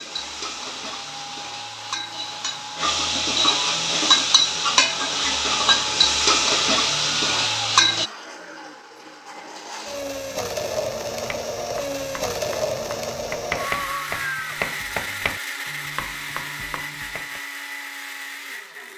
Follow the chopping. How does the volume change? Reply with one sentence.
The loudness of the chopping goes up, then down.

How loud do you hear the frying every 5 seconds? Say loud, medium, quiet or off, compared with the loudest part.
loud, loud, off, off.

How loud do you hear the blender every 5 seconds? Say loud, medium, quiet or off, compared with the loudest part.
medium, medium, loud, medium.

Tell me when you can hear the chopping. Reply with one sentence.
The chopping can be heard from 11.2 to 17.4 s.